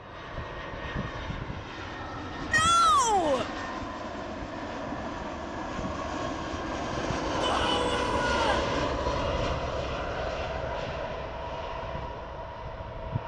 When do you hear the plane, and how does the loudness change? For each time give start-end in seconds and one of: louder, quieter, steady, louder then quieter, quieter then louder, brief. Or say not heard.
0.0-13.2 louder then quieter.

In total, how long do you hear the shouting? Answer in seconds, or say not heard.
2 s.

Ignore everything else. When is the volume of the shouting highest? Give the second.
3 s.